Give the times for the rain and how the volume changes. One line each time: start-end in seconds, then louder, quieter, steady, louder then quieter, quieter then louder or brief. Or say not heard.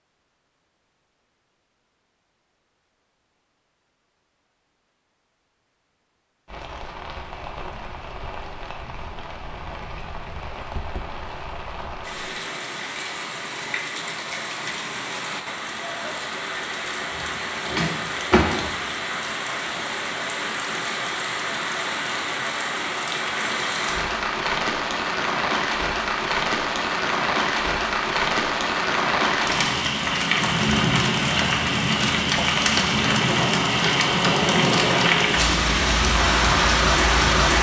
6.5-37.5 louder.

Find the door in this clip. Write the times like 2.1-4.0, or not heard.
17.6-18.8.